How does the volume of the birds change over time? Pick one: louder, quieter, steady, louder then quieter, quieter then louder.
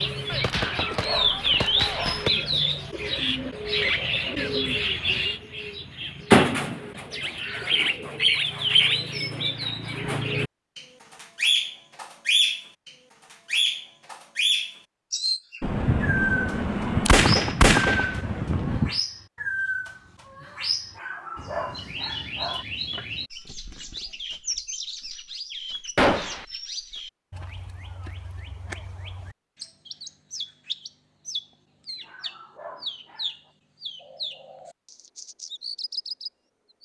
quieter.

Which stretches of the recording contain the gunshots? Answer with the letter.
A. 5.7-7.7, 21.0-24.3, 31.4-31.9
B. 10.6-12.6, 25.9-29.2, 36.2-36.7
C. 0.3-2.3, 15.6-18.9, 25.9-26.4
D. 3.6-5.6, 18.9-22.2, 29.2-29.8
C.